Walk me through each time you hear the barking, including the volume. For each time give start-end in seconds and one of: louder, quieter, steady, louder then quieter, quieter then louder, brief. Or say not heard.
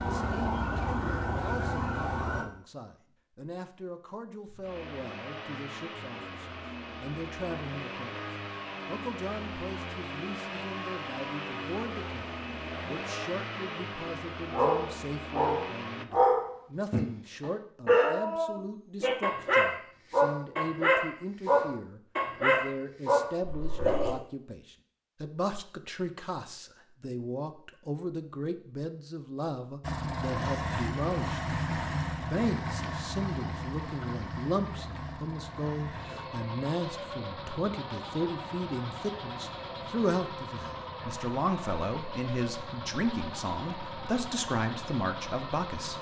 14.5-24.1 steady.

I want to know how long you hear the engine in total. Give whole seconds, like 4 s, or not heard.
28 s.